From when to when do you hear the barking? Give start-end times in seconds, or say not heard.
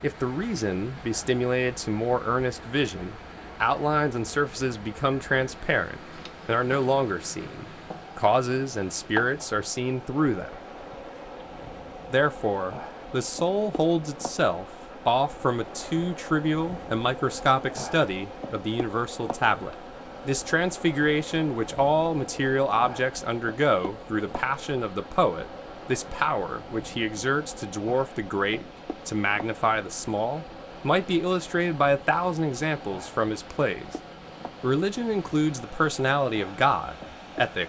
not heard.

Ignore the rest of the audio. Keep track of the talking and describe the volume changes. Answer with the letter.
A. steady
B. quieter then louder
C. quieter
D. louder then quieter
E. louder
A.